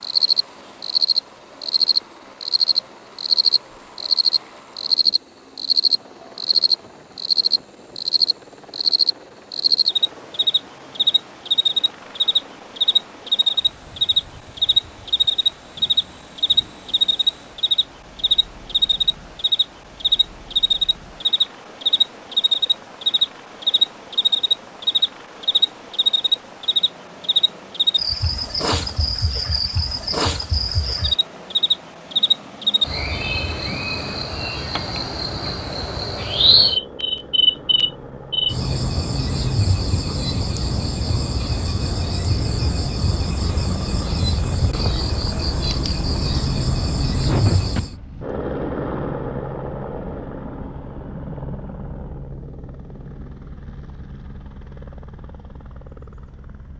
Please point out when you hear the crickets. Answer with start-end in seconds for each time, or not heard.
0.0-48.0.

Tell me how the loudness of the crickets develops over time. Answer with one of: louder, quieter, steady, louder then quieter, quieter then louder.
quieter.